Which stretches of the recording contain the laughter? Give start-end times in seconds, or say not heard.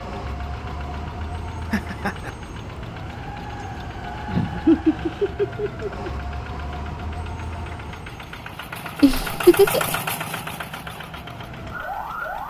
1.7-2.3, 4.2-6.0, 9.0-9.9.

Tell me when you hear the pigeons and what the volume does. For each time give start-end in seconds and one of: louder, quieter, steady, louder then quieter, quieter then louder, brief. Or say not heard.
not heard.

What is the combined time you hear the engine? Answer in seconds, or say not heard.
12 s.